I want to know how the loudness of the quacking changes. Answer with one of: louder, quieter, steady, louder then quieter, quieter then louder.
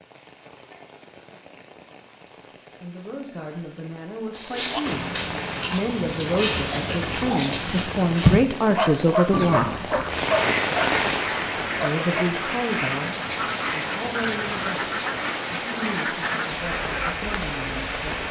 steady.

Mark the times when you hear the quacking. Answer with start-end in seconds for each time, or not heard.
9.3-17.3.